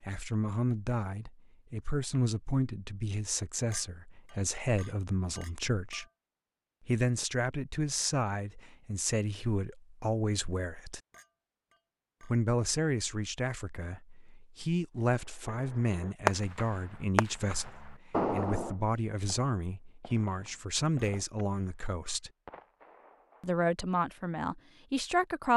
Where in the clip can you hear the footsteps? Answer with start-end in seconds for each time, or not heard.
not heard.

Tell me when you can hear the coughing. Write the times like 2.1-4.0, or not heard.
not heard.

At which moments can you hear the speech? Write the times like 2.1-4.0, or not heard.
0.0-6.0, 6.8-11.0, 12.2-22.3, 23.4-25.5.